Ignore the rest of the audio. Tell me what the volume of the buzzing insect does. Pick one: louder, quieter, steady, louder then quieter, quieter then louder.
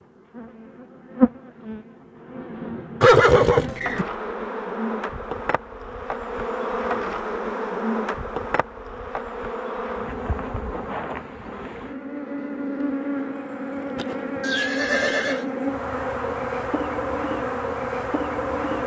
steady.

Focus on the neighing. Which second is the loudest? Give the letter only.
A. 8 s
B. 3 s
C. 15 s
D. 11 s
B.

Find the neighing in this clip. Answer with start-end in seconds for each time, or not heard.
3.0-4.0, 14.4-15.4.